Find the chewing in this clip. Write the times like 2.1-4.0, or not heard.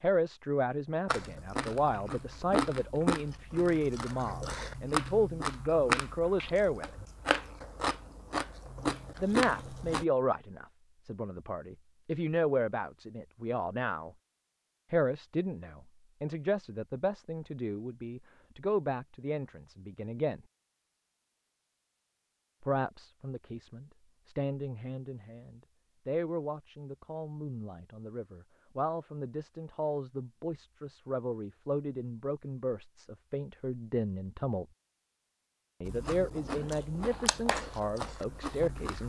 1.1-10.1, 35.9-39.0.